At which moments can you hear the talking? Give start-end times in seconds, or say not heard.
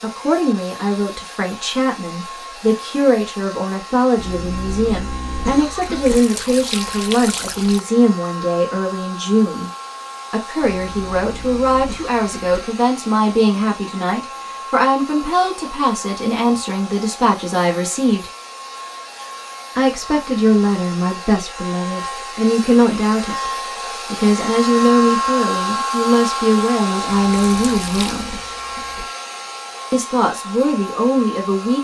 0.0-9.7, 10.3-18.3, 19.8-23.5, 24.1-28.4, 29.9-31.7.